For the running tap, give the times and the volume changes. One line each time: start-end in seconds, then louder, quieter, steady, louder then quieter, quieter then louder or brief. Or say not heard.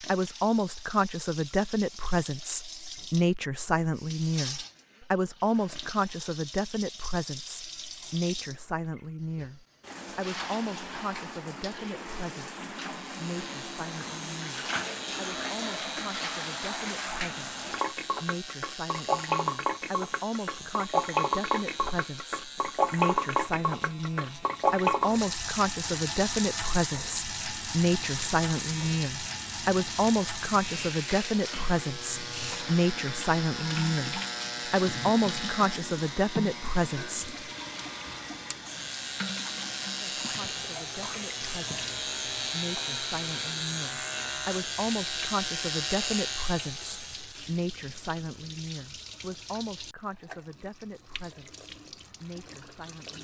0.0-53.1 louder then quieter.